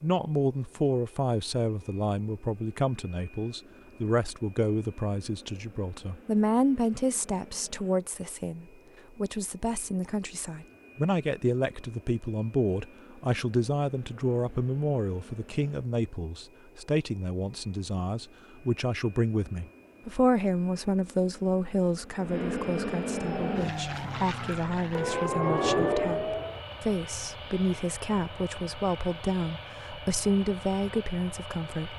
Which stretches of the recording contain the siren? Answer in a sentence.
You can hear the siren from 23.3 to 26.6 s.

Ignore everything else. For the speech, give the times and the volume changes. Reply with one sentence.
The speech can be heard from 0.0 to 31.9 s, at a steady volume.